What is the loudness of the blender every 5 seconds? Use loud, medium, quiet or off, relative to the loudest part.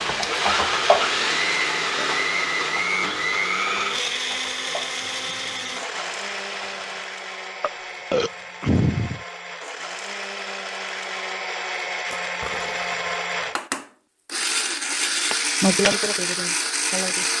loud, medium, loud, loud.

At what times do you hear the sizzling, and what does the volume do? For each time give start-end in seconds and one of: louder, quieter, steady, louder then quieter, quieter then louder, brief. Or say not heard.
0.0-7.0 quieter
15.1-17.3 brief.